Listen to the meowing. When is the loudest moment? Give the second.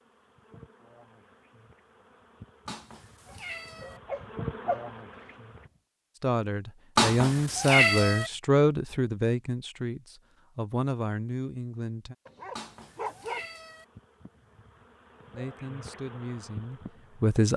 8 s.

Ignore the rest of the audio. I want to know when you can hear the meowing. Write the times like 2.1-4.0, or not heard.
2.6-4.0, 7.0-8.3, 12.6-13.8.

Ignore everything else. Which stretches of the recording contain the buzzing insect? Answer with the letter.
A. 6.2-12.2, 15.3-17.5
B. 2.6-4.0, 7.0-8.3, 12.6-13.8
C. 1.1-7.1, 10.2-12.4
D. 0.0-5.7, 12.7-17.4
D.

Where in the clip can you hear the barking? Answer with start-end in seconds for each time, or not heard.
3.3-5.7, 12.2-13.4.